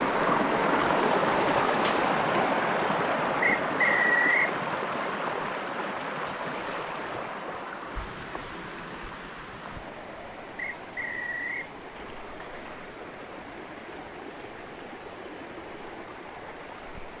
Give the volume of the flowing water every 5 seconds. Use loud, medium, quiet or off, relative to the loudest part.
loud, medium, quiet, quiet.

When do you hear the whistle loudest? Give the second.
4 s.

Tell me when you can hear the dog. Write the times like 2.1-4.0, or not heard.
not heard.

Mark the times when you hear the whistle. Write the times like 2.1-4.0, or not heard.
3.4-4.5, 10.8-11.7.